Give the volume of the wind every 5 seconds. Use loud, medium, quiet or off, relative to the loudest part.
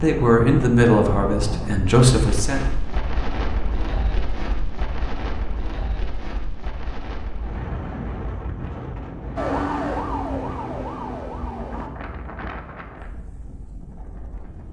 loud, loud, medium.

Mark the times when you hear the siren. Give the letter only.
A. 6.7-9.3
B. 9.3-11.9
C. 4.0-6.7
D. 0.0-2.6
B.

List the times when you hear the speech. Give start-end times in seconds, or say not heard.
0.0-2.6.